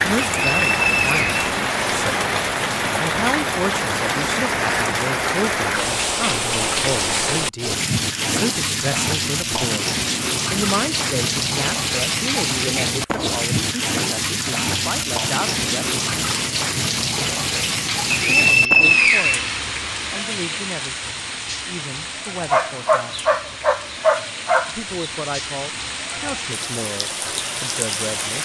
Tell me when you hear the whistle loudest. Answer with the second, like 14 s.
19 s.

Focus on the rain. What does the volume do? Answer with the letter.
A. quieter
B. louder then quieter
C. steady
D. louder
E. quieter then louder
A.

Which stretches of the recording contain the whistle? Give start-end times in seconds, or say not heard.
0.2-1.4, 18.1-19.6.